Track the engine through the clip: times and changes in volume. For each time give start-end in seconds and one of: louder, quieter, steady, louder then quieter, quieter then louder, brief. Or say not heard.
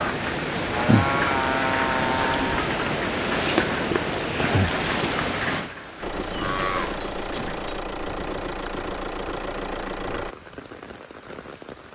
6.0-10.3 steady.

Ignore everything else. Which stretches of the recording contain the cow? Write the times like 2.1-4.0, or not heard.
0.7-2.6, 6.2-7.8.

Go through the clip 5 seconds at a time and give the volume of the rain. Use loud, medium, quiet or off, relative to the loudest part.
loud, medium, quiet.